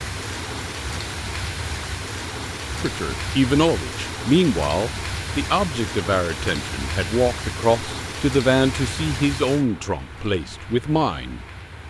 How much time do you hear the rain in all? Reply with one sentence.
The rain can be heard for 12 seconds in total.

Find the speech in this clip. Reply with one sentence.
You can hear the speech from 2.8 to 11.8 s.